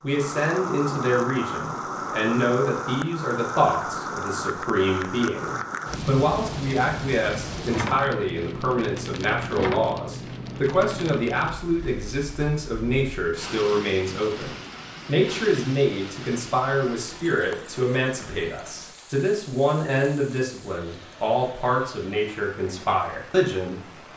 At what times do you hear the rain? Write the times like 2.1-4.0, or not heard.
0.0-24.1.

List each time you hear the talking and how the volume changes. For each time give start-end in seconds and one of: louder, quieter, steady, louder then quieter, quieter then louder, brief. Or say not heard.
0.0-24.1 steady.